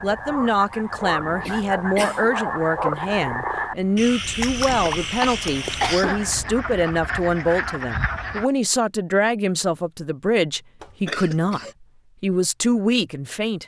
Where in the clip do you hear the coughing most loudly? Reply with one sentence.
The volume of the coughing peaks at 6 seconds.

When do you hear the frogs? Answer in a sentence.
The frogs can be heard from 0.0 to 8.4 s.